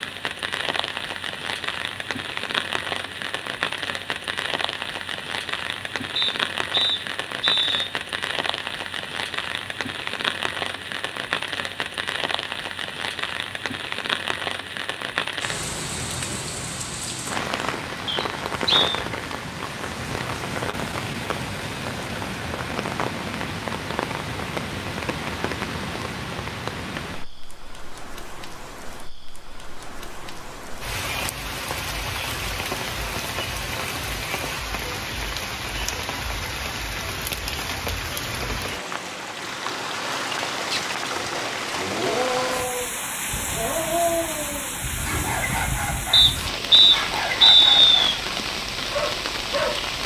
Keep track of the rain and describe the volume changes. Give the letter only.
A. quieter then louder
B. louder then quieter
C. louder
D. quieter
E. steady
E.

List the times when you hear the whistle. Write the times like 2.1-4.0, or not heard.
6.2-7.9, 18.1-18.9, 46.1-47.9.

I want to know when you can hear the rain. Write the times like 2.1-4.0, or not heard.
0.0-50.0.